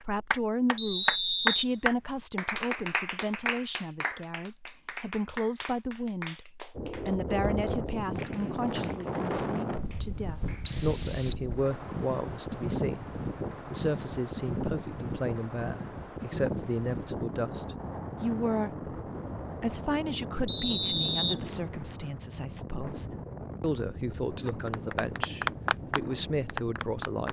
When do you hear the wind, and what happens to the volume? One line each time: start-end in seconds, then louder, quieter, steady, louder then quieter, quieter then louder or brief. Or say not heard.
6.8-27.2 quieter.